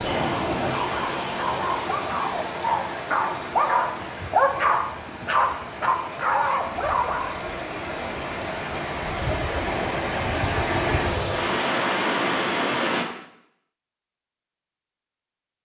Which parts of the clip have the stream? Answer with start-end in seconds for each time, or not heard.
0.0-13.1.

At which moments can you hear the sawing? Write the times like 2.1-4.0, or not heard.
not heard.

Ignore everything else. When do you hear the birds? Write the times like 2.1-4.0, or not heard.
not heard.